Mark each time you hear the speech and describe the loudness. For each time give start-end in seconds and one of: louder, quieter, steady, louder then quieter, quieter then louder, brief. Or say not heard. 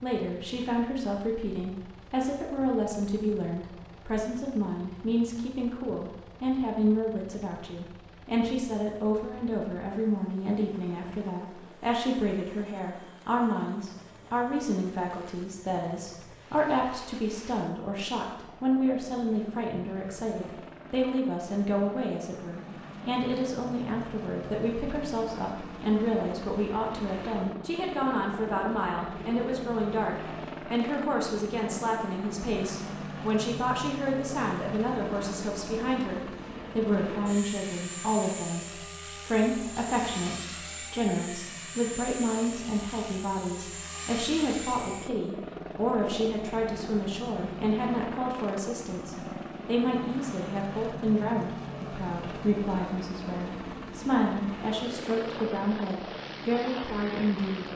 0.0-57.7 steady.